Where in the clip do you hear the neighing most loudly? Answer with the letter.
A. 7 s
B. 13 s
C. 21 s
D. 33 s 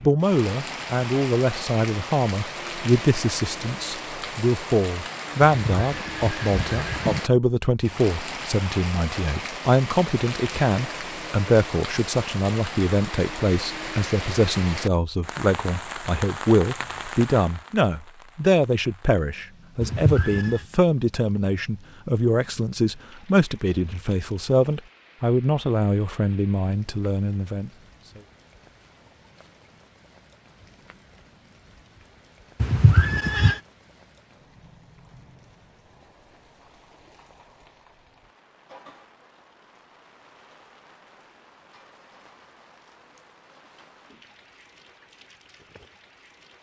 D.